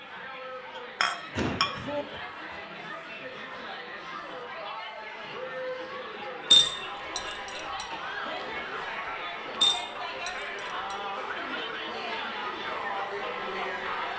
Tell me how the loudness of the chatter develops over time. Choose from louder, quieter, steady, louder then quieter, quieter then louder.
louder.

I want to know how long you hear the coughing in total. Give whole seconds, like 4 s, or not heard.
2 s.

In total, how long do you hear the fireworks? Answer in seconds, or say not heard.
not heard.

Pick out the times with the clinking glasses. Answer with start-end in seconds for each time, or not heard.
1.0-2.0, 6.5-7.8, 9.6-10.9.